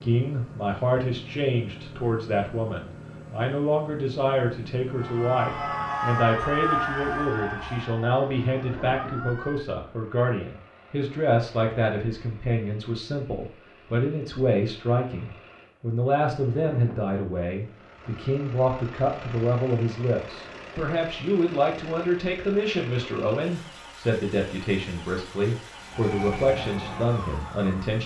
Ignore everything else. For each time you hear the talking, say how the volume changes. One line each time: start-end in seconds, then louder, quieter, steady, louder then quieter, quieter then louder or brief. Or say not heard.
0.0-28.0 steady.